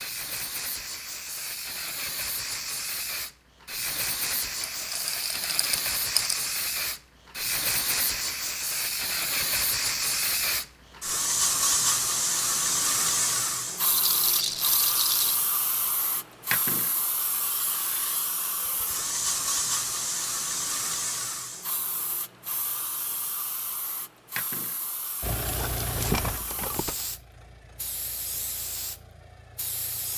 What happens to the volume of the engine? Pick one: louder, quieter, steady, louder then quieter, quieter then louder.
quieter.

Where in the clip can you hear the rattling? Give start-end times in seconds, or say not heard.
4.6-6.3, 13.8-15.4, 25.4-27.1.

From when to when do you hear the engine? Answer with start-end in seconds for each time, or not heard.
25.2-30.1.